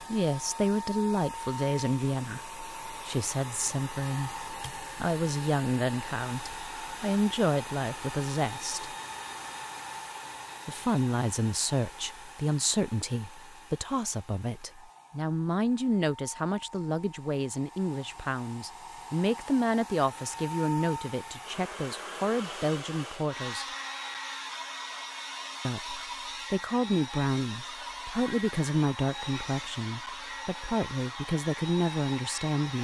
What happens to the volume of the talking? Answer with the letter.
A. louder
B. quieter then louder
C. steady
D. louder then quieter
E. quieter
C.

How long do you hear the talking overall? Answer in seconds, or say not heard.
29 s.